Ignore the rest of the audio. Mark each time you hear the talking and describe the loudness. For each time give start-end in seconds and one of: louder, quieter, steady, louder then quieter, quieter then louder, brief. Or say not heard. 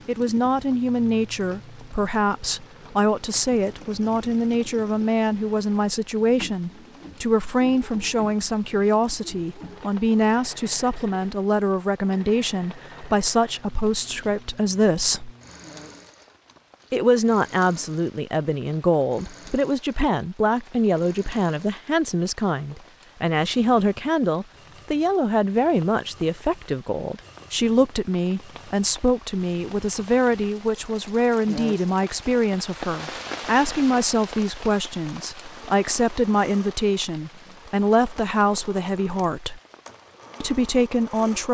0.1-15.3 steady
16.9-39.6 steady
40.4-41.4 brief.